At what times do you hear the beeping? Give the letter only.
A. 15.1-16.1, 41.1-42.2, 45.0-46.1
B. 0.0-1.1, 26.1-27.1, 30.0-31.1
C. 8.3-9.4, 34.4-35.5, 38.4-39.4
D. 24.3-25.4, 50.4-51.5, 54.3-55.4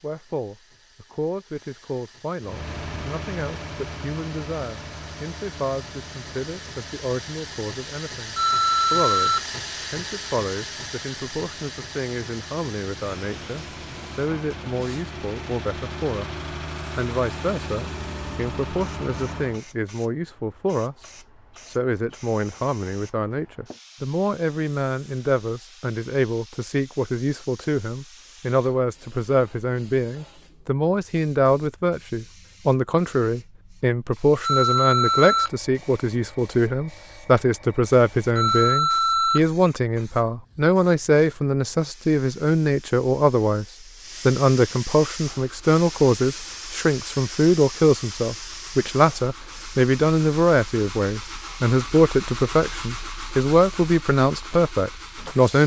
C.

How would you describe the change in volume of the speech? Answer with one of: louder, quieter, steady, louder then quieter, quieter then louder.
louder.